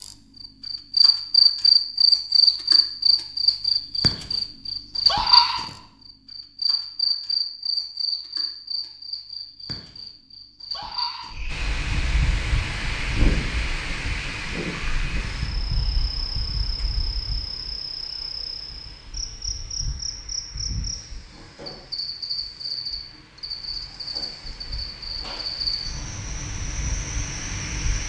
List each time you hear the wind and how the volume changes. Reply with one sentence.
The wind can be heard from 11.4 to 28.0 s, getting quieter then louder.